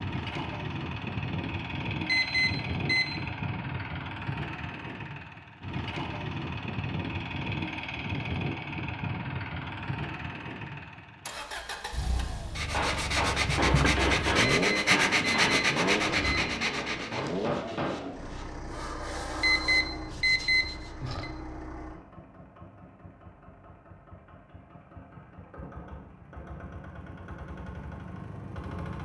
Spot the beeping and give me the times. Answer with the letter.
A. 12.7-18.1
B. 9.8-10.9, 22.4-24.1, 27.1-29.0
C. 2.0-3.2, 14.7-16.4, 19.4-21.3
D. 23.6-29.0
C.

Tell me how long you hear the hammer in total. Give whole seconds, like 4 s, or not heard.
5 s.